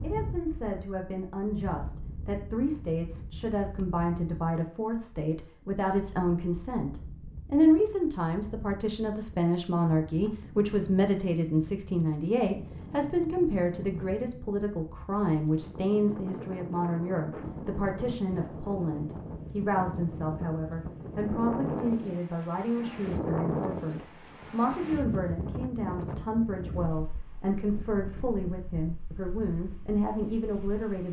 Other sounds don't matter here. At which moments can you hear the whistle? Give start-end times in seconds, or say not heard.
not heard.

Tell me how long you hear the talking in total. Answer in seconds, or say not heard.
31 s.